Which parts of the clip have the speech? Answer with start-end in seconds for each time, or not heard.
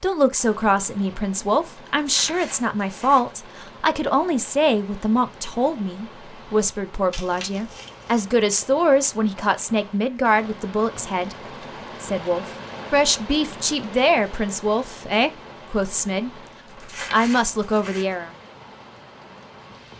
0.0-11.3, 12.0-16.3, 17.1-18.3.